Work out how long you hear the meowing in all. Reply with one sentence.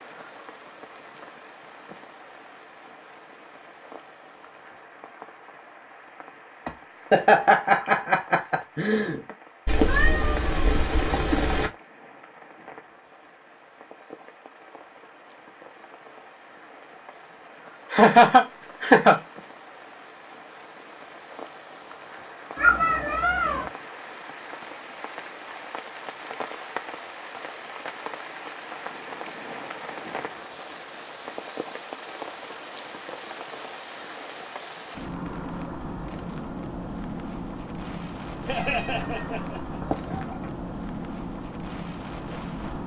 You can hear the meowing for 5 seconds altogether.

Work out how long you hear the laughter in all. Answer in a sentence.
You can hear the laughter for 5 seconds altogether.